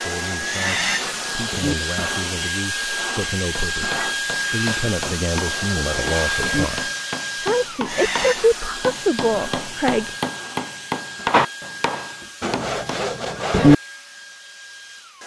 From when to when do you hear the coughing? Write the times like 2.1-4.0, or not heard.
not heard.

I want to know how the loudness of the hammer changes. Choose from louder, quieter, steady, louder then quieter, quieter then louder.
louder.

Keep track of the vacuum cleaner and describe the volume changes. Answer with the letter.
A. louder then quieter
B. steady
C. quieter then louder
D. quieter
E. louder
D.